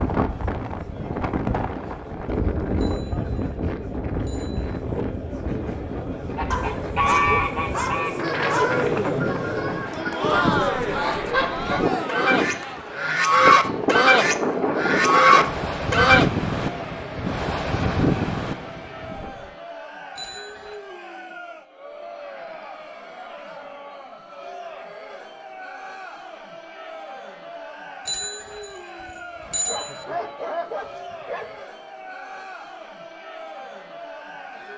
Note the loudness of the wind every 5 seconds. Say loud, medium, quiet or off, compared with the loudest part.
loud, medium, loud, loud, off, off, off.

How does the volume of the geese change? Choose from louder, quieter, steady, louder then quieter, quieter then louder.
quieter then louder.